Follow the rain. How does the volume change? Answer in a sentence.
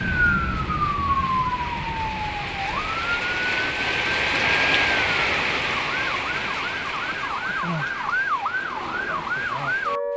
The loudness of the rain goes up, then down.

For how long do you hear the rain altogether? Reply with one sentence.
You can hear the rain for 10 seconds altogether.